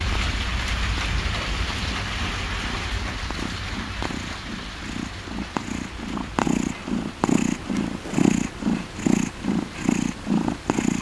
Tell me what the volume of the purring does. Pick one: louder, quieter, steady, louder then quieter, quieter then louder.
louder.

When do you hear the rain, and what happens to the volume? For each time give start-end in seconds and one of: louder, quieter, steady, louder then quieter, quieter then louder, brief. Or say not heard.
0.0-10.8 quieter.